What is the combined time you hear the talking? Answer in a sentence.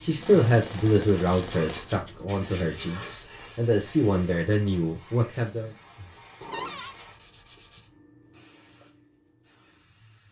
The talking can be heard for 6 seconds in total.